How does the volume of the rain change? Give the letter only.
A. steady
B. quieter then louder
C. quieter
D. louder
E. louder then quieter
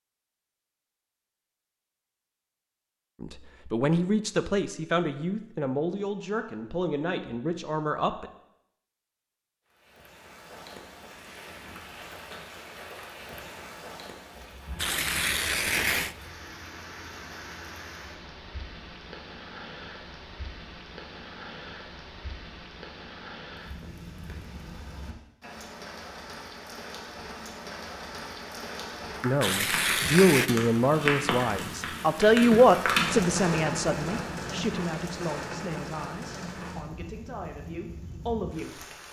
D.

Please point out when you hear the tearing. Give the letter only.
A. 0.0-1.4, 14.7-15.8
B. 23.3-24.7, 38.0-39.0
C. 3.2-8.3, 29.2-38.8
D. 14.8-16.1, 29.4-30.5
D.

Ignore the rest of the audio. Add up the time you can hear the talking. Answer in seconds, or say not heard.
15 s.